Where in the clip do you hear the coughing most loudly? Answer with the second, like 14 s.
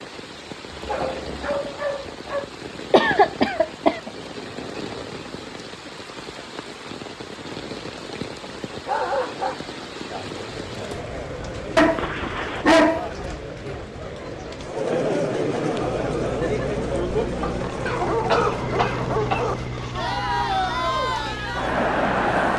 3 s.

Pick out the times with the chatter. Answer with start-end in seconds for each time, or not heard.
10.1-22.5.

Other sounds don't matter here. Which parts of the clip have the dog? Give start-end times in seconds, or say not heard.
0.7-2.5, 8.8-9.6, 11.8-13.8, 17.4-20.0.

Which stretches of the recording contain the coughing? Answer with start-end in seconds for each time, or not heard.
2.9-4.1, 11.8-13.0, 17.9-19.4.